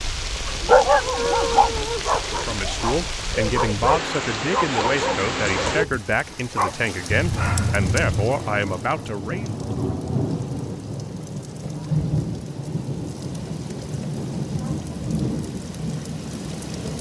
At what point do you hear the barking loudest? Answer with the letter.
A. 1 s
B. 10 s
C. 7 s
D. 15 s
A.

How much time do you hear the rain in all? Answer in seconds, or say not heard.
17 s.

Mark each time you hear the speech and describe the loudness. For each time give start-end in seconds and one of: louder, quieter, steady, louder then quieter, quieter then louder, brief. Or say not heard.
2.2-9.5 steady.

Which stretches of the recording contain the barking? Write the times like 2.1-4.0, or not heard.
0.5-8.3.